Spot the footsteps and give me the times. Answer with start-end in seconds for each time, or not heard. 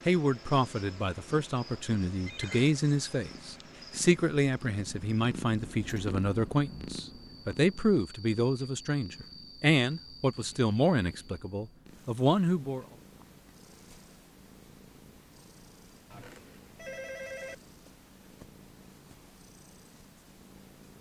not heard.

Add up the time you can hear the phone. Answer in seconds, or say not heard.
2 s.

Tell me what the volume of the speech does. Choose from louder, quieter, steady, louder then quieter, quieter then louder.
steady.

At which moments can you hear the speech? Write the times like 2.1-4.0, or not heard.
0.1-12.8.